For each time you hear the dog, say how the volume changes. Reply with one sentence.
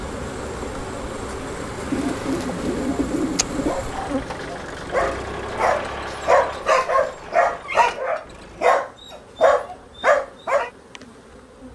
The dog can be heard from 3.6 to 10.7 s, getting louder.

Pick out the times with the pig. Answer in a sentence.
The pig can't be heard in this clip.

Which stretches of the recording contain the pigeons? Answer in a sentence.
You can hear the pigeons from 1.9 to 3.8 s.